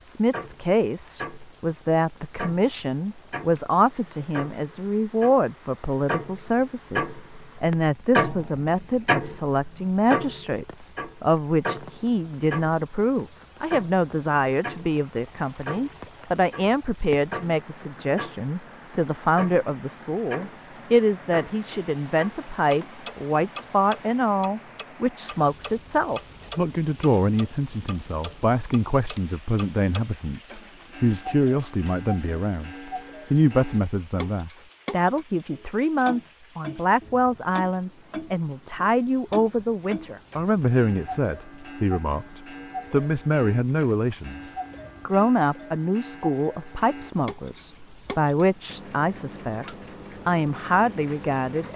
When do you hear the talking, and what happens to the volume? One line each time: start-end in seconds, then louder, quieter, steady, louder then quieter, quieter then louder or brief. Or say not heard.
0.0-51.7 steady.